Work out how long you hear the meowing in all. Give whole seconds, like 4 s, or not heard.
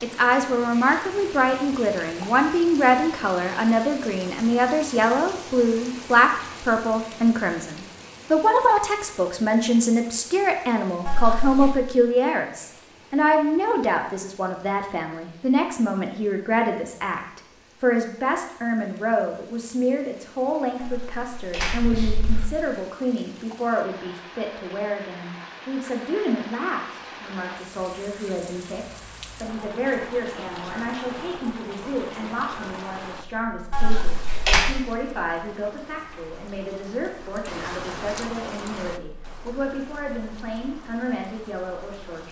3 s.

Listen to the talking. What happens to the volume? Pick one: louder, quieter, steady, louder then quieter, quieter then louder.
quieter.